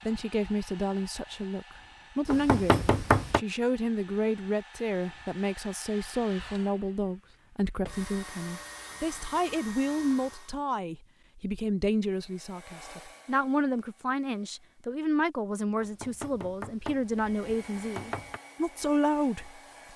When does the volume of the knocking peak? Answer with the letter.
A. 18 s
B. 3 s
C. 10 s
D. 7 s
B.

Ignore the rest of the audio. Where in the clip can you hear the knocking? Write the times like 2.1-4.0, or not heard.
2.3-3.4, 15.8-18.4.